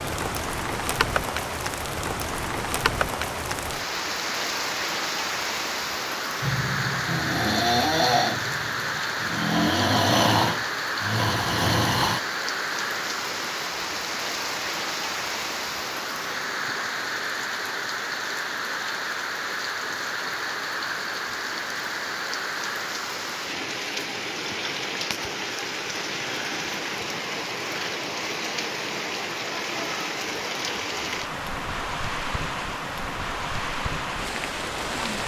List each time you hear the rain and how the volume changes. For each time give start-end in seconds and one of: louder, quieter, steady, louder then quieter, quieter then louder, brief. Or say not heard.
0.0-35.2 steady.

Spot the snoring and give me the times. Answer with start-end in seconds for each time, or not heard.
6.4-12.2.